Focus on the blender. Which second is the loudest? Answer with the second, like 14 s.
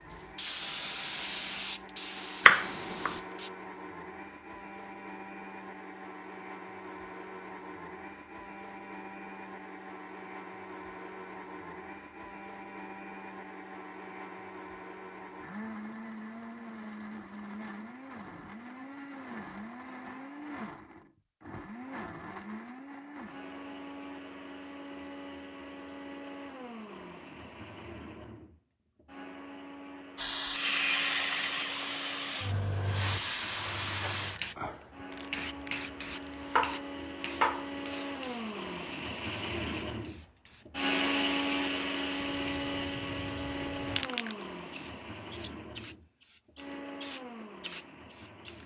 41 s.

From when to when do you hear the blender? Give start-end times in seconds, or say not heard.
0.0-48.6.